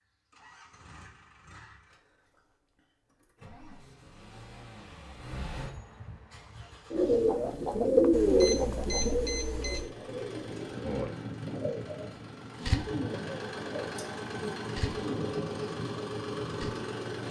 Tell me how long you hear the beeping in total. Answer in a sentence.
You can hear the beeping for 2 seconds altogether.